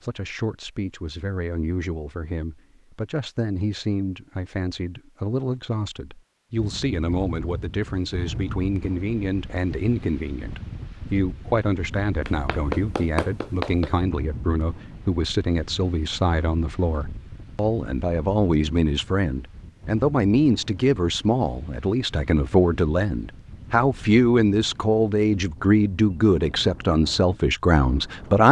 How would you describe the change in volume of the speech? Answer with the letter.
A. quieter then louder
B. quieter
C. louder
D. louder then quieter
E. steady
C.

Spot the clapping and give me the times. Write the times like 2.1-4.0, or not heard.
12.2-13.9.